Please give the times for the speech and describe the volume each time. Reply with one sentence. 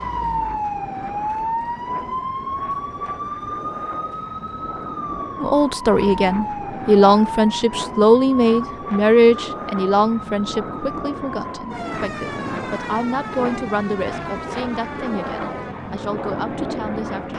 The speech can be heard from 5.4 to 17.3 s, getting quieter.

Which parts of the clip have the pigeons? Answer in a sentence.
You can't hear the pigeons here.